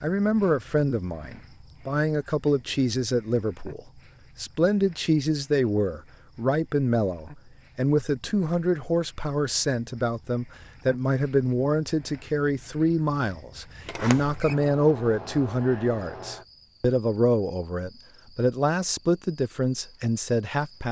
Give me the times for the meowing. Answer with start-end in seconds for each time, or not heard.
not heard.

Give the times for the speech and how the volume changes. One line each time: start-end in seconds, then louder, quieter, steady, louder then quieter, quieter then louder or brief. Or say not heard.
0.0-20.8 steady.